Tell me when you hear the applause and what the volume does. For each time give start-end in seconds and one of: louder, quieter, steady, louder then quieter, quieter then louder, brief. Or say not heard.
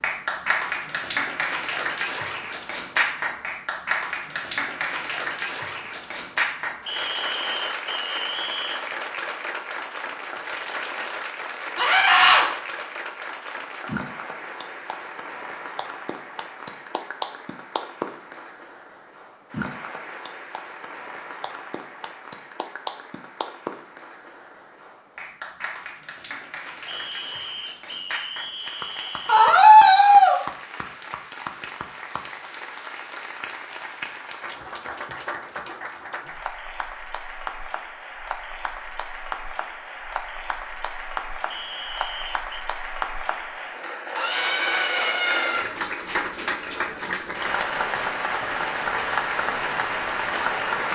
0.0-50.9 quieter then louder.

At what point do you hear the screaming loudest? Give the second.
30 s.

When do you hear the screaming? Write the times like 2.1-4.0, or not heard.
11.8-12.4, 29.2-30.4, 44.1-45.7.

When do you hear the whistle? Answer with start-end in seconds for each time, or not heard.
6.8-8.8, 26.9-29.4, 41.5-42.5.